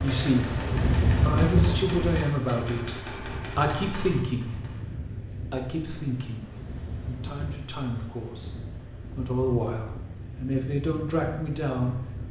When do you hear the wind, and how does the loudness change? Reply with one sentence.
The wind can be heard from 0.0 to 12.2 s, getting quieter.